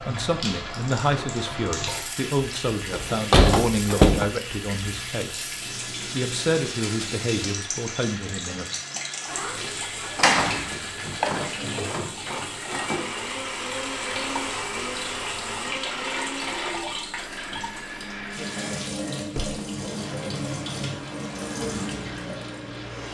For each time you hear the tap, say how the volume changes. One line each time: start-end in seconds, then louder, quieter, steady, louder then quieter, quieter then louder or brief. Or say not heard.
0.0-23.0 steady.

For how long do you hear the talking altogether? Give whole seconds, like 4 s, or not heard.
8 s.